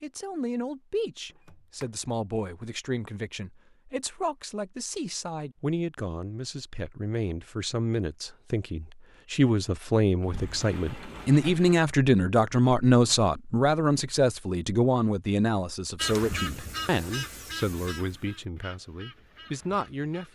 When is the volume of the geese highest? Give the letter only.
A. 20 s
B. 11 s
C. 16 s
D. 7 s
C.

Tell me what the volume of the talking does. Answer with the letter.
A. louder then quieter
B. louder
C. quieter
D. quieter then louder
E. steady
A.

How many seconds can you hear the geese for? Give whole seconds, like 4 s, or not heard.
4 s.